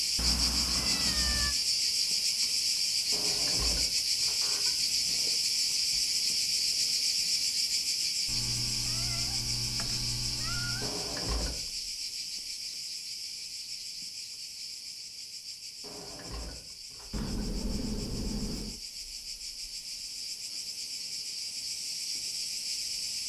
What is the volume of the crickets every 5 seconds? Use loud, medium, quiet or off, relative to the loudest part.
loud, loud, medium, quiet, medium.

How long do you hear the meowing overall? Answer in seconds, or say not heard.
6 s.